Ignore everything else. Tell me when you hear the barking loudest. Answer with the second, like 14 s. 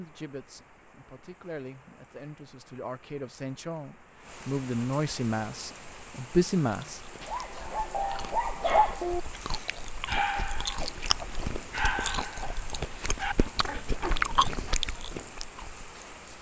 9 s.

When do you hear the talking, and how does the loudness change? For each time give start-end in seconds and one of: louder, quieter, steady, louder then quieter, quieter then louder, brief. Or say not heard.
0.0-7.0 louder.